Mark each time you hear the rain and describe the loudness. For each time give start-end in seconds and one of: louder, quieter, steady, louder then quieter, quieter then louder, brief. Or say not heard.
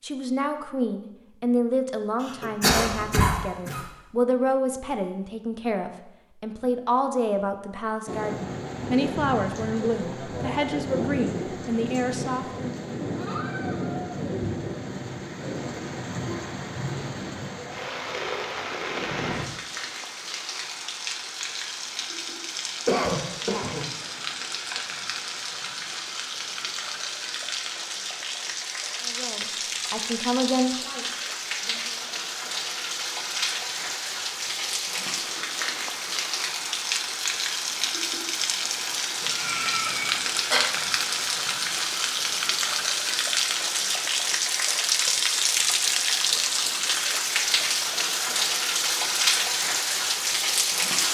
8.1-51.0 louder.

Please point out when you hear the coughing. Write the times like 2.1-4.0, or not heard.
2.2-3.9, 22.9-23.9, 39.3-40.6.